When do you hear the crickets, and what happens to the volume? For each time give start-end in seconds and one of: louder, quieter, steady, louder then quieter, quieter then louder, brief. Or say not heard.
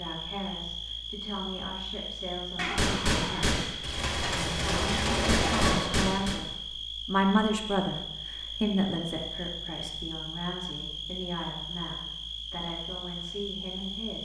0.0-14.1 steady.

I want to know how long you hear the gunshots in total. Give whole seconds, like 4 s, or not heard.
4 s.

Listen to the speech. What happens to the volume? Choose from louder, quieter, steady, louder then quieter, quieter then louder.
louder then quieter.